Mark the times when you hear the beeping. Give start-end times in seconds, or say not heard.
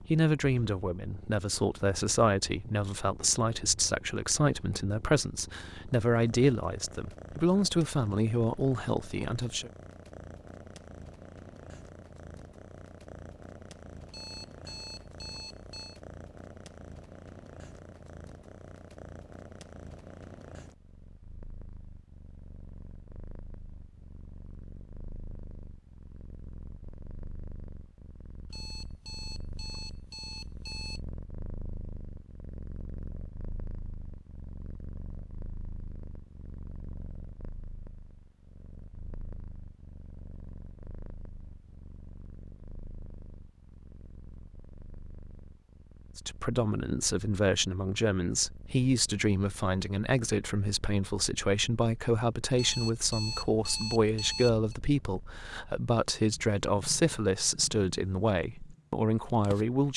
14.1-16.0, 28.5-31.0, 52.5-54.7.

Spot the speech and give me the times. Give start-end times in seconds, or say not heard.
0.0-9.7, 46.1-59.9.